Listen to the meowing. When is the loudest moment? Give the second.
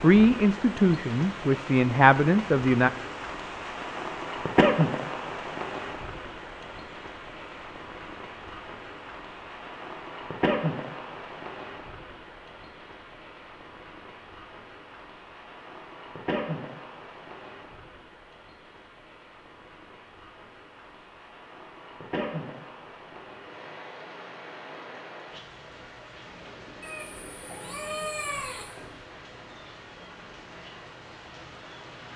28 s.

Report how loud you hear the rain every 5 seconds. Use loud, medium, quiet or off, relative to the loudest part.
loud, medium, medium, medium, medium, quiet, quiet.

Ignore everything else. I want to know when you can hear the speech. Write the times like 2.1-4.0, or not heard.
0.0-2.9.